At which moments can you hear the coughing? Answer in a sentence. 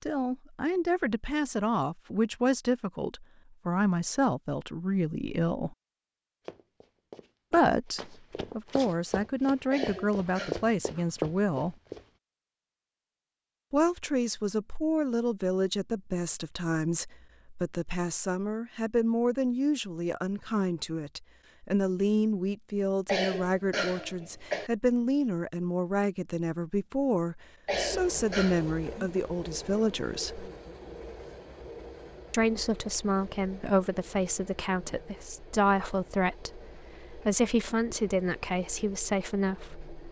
The coughing can be heard from 9.7 to 10.7 s, from 23.1 to 24.7 s and from 27.6 to 28.6 s.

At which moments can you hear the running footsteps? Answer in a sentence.
You can hear the running footsteps from 6.5 to 12.0 s.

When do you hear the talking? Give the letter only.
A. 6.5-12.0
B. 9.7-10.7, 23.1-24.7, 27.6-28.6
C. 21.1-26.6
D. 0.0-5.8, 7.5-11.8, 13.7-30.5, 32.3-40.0
D.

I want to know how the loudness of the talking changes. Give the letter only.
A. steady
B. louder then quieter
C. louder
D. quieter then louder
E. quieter
A.